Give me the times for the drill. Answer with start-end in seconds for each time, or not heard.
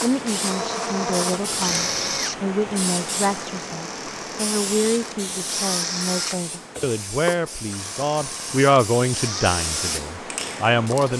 0.0-11.0.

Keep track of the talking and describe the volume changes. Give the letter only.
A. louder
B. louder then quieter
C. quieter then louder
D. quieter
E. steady
A.